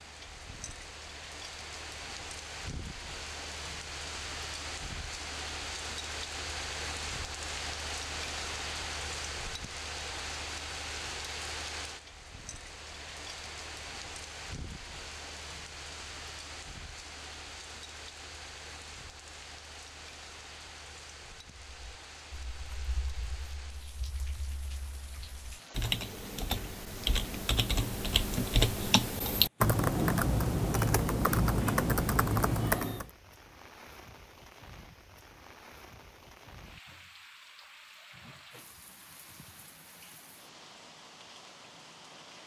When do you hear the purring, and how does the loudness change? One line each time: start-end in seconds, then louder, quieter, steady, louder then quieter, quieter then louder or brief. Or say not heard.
not heard.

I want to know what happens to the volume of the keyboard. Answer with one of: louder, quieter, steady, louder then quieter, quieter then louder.
louder.